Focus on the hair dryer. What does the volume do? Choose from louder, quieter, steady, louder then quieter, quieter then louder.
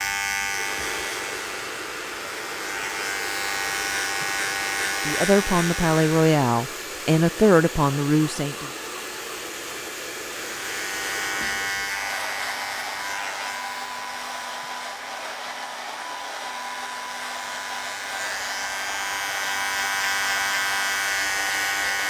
steady.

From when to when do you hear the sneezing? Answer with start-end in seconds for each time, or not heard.
not heard.